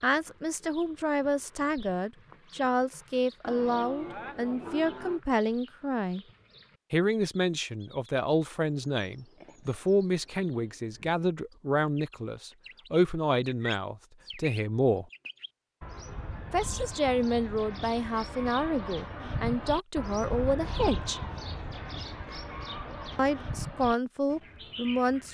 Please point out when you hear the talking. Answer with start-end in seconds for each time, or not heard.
0.0-6.2, 6.9-15.1, 16.5-21.2, 23.1-25.2.